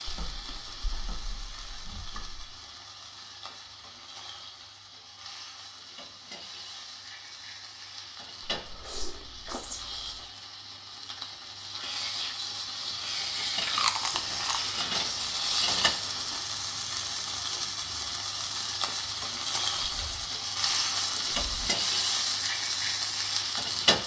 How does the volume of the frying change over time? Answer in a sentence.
The loudness of the frying goes up.